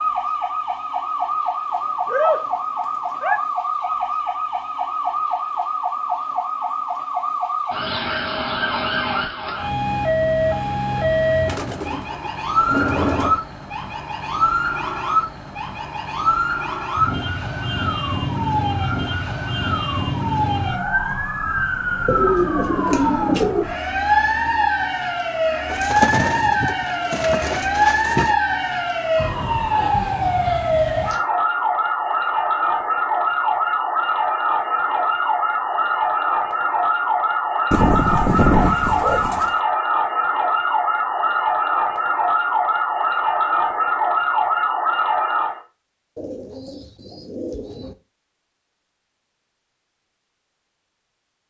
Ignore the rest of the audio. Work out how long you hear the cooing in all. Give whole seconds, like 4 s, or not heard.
11 s.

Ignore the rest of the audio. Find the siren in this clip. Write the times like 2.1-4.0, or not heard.
0.0-45.6.